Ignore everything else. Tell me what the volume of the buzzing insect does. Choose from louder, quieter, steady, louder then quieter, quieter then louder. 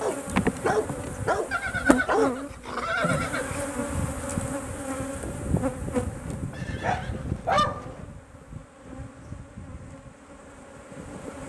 quieter.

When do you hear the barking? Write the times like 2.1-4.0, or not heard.
0.0-2.4, 6.8-8.1.